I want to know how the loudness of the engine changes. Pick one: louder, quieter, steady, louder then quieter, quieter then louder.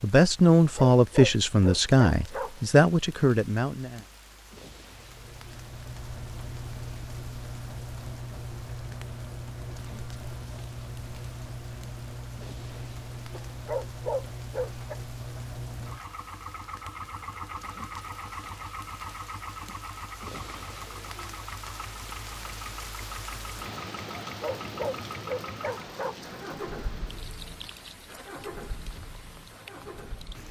steady.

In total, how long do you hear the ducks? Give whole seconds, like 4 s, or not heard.
not heard.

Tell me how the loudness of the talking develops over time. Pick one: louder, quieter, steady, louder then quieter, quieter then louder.
quieter.